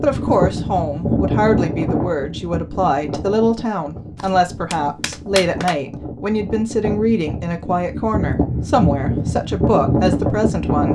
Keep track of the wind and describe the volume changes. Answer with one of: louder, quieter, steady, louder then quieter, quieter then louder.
quieter then louder.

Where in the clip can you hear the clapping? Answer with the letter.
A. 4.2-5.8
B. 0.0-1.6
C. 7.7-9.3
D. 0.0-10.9
A.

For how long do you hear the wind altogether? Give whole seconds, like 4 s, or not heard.
11 s.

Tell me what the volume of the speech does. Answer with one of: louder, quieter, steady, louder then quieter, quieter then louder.
steady.